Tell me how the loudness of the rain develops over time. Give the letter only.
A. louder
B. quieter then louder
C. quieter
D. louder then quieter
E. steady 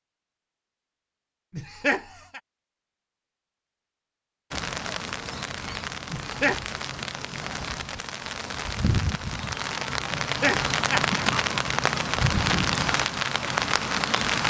A.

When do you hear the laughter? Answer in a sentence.
The laughter can be heard from 1.5 to 2.4 s, from 6.1 to 6.7 s and from 10.2 to 11.2 s.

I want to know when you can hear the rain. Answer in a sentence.
You can hear the rain from 4.5 to 14.4 s.